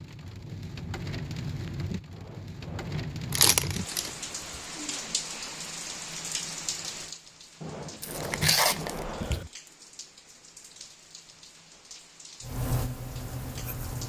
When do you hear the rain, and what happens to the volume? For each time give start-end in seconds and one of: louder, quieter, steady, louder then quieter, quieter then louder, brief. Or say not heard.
0.0-14.0 quieter.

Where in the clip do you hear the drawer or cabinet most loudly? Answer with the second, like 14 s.
8 s.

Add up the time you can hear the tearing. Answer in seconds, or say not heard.
2 s.